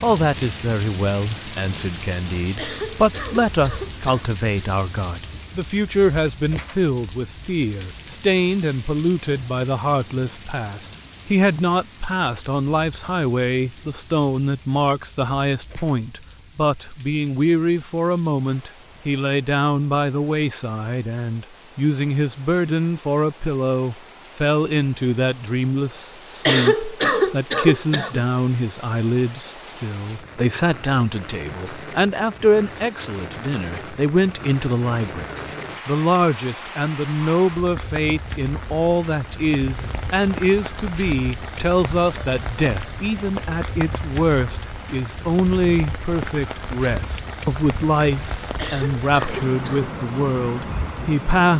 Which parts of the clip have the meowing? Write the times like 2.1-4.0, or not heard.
not heard.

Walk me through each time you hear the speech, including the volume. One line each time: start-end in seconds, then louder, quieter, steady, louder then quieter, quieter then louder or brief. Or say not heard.
0.0-51.5 steady.